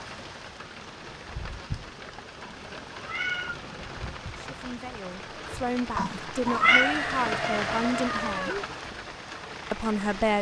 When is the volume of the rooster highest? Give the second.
7 s.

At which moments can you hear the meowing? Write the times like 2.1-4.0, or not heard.
2.4-3.6, 6.0-6.9.